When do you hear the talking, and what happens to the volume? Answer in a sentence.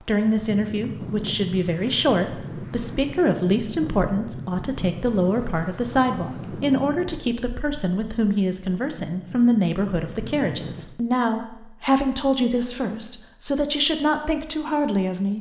The talking can be heard from 0.0 to 15.3 s, at a steady volume.